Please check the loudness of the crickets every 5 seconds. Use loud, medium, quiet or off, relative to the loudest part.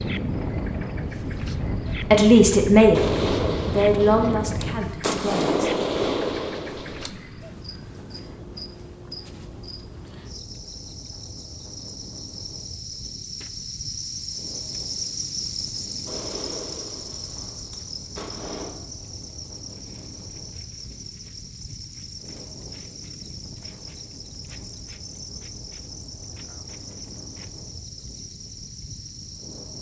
medium, medium, loud, loud, medium, medium.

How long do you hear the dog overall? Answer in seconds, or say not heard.
not heard.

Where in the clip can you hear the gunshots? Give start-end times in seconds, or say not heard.
2.9-7.1, 16.1-18.8.